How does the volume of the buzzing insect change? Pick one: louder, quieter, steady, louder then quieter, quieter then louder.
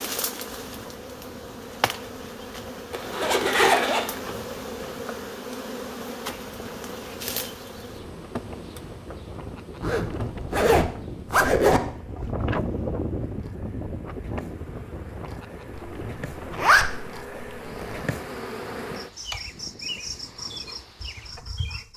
quieter then louder.